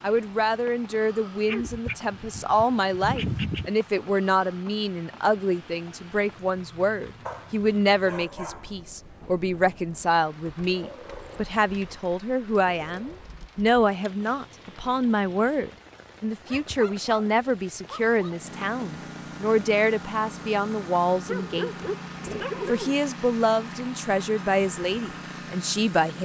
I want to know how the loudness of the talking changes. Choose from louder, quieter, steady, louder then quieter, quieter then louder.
steady.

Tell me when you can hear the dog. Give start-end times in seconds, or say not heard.
1.4-3.7, 7.2-8.8, 10.7-13.3, 16.2-18.5, 21.2-22.9.